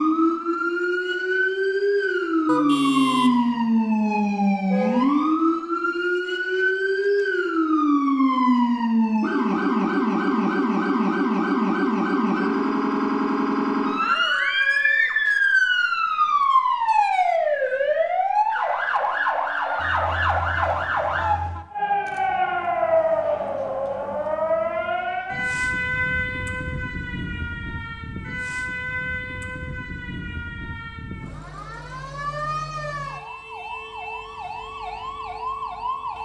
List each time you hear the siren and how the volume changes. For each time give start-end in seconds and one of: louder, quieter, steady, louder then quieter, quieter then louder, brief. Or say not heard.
0.0-36.2 quieter.